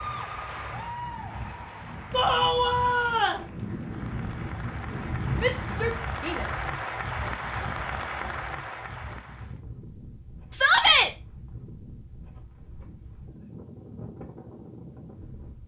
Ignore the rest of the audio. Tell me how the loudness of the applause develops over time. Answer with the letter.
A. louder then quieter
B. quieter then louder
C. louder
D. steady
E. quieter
B.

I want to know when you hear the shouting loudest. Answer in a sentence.
The volume of the shouting peaks at 11 seconds.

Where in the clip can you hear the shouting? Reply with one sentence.
The shouting can be heard from 2.1 to 3.5 s, from 5.4 to 6.7 s and from 10.5 to 11.1 s.